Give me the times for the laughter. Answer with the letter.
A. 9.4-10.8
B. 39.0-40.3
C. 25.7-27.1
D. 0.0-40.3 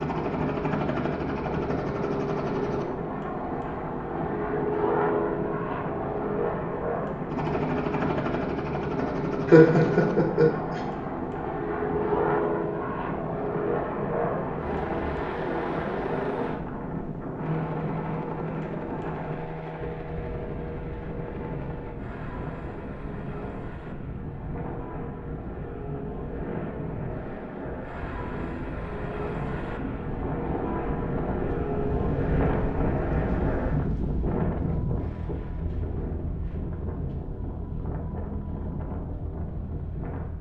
A.